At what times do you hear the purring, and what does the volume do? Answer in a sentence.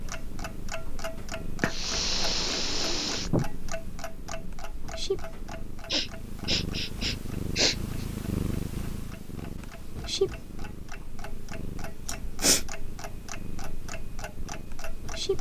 You can hear the purring from 0.0 to 15.3 s, getting louder then quieter.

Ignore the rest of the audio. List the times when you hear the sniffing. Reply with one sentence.
The sniffing can be heard from 1.6 to 3.5 s, from 5.9 to 8.1 s and from 12.1 to 12.7 s.